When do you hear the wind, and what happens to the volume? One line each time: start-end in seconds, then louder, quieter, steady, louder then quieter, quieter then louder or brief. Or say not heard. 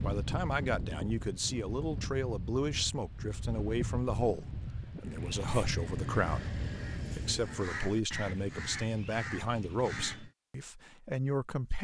0.0-7.3 steady.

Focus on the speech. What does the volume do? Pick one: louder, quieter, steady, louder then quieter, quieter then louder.
steady.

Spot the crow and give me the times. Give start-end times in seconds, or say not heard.
5.0-10.3.